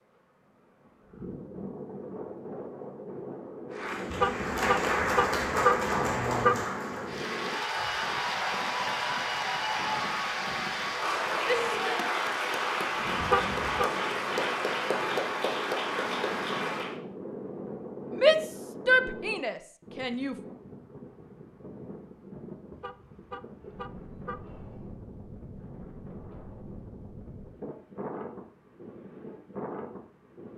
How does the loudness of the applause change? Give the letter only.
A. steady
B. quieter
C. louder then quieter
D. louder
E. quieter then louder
A.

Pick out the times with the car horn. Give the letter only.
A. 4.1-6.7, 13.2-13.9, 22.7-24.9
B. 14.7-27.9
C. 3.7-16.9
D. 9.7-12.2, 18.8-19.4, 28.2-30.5
A.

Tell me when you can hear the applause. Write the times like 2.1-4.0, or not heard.
3.7-16.9.